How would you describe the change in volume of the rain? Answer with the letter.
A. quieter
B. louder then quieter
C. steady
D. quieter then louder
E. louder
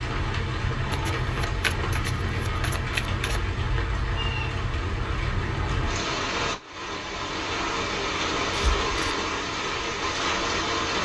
C.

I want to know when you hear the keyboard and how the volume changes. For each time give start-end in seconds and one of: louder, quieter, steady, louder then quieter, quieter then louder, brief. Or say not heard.
not heard.